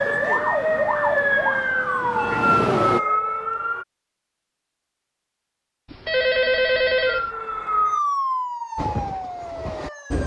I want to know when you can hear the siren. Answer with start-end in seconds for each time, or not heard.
0.0-3.9, 7.0-10.2.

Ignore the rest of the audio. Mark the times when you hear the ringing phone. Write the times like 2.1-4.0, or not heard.
5.9-7.3.